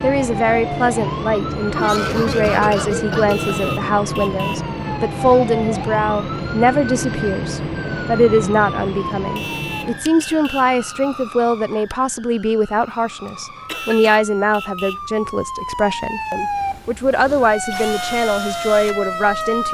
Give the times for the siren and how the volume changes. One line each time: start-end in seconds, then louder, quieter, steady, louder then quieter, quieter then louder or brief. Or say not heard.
0.0-19.6 quieter then louder.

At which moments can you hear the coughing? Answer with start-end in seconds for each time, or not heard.
1.7-3.9, 13.7-14.2.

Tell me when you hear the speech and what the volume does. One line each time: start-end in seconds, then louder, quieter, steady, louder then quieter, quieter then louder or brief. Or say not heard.
0.0-19.6 steady.